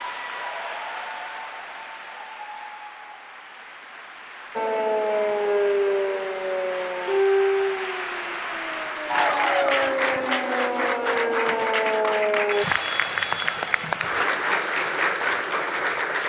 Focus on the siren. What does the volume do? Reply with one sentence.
The loudness of the siren goes down, then up.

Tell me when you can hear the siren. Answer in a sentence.
The siren can be heard from 4.5 to 12.7 s.